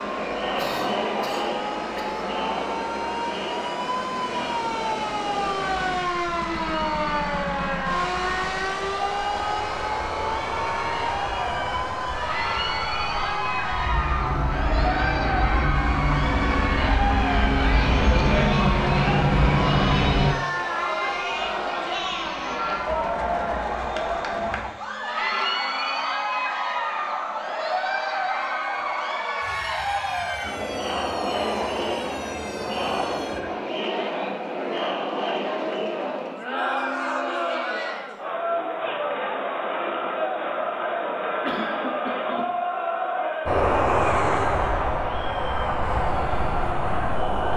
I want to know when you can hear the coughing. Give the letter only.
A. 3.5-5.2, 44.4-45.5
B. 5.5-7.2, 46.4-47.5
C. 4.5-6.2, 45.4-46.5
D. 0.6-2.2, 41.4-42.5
D.